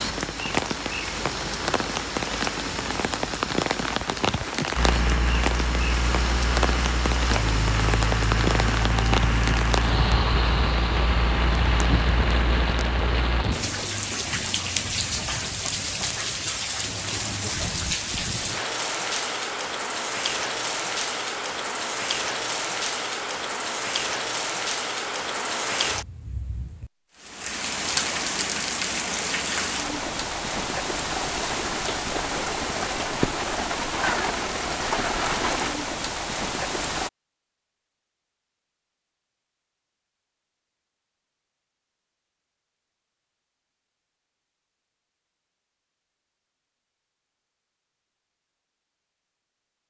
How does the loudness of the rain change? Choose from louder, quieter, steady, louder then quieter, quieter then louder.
steady.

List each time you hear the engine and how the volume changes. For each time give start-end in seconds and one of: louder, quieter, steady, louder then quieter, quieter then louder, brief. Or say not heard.
4.8-13.4 steady.